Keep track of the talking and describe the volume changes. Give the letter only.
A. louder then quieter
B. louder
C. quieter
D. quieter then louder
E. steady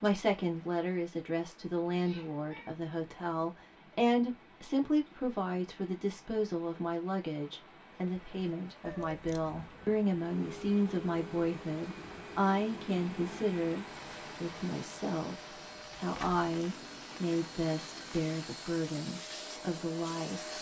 E.